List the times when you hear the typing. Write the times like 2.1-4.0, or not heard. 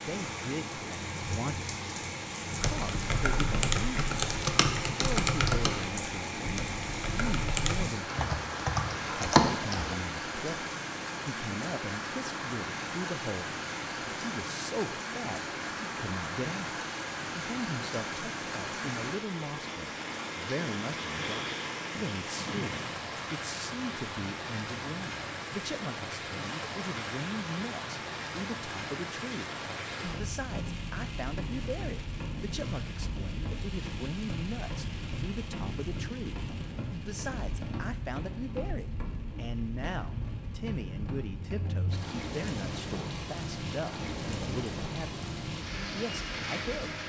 2.6-9.9.